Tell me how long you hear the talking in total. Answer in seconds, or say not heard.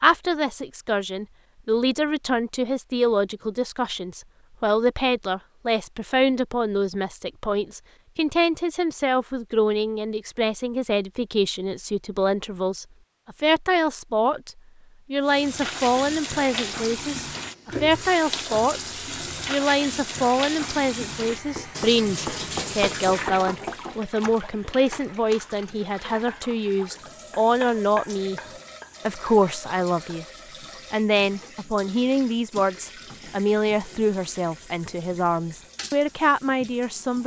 36 s.